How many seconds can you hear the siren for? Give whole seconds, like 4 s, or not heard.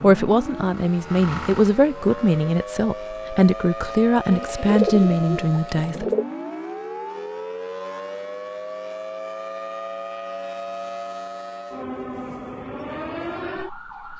14 s.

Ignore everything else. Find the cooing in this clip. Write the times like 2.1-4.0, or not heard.
4.3-6.2.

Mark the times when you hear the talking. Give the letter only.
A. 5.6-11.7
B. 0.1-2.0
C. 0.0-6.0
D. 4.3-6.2
C.